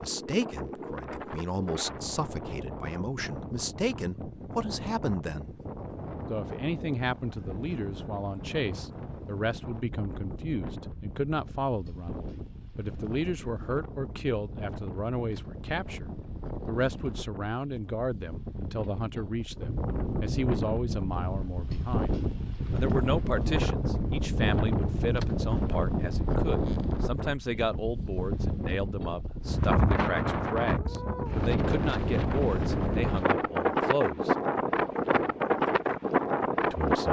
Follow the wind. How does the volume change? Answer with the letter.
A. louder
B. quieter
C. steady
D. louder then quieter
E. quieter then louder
A.